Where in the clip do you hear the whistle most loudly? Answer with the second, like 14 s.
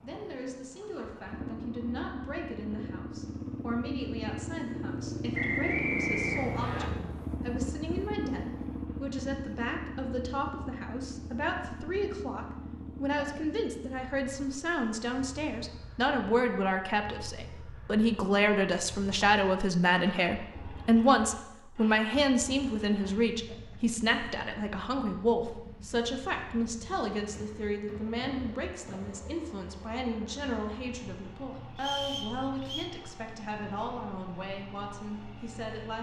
6 s.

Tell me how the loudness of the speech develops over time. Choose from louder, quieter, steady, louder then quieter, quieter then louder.
louder then quieter.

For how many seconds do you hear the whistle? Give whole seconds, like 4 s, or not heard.
3 s.